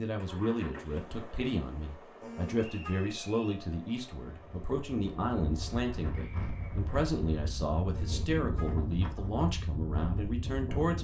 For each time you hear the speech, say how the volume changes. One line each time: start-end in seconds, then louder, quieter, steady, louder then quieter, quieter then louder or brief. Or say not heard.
0.0-10.9 steady.